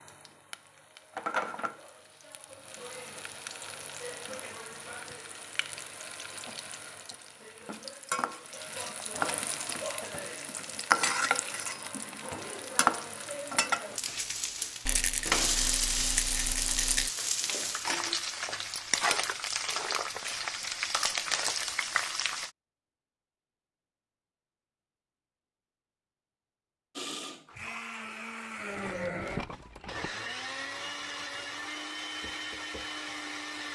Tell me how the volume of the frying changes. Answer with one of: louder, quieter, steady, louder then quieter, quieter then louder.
louder.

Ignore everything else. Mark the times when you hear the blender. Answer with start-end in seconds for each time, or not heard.
26.9-33.7.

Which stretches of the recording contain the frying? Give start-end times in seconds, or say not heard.
0.0-22.5.